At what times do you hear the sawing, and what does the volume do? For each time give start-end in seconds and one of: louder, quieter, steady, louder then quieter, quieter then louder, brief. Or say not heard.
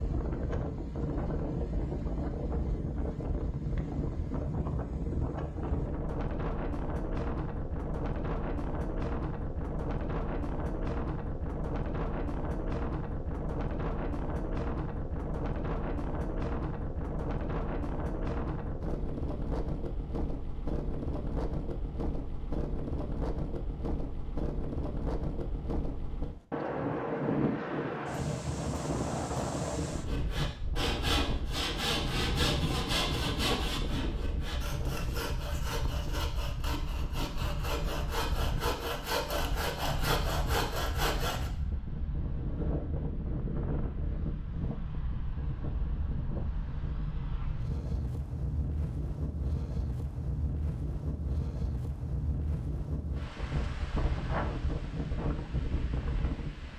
30.0-41.5 quieter then louder.